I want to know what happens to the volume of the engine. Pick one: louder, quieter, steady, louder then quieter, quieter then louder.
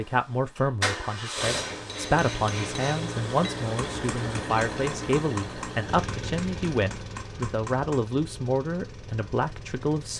quieter.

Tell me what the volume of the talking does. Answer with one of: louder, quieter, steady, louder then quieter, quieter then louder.
steady.